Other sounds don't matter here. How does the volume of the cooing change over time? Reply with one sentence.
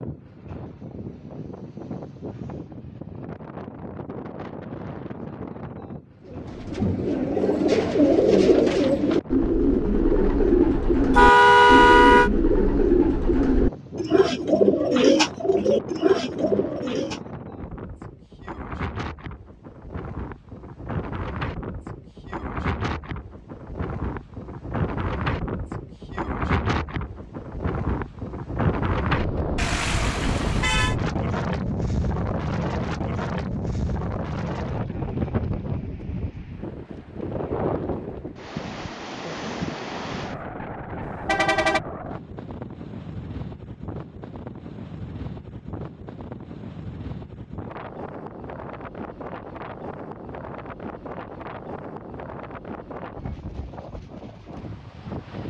The volume of the cooing stays about the same.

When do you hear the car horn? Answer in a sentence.
You can hear the car horn from 11.1 to 12.3 s, from 29.6 to 30.9 s and from 41.2 to 41.8 s.